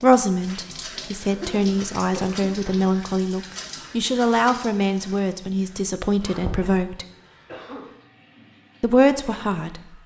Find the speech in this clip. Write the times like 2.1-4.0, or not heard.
0.0-7.0, 8.8-10.0.